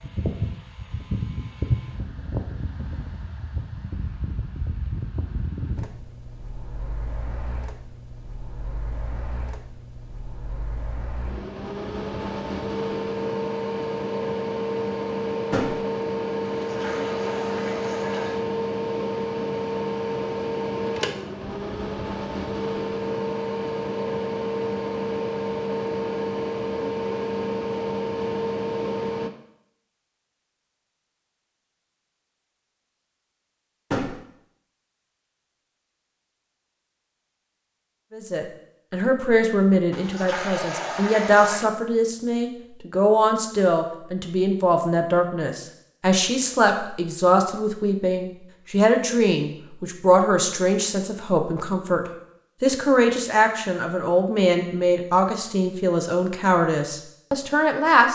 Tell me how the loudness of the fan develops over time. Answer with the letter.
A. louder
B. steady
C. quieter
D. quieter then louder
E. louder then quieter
D.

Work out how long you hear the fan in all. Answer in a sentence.
The fan can be heard for 29 seconds in total.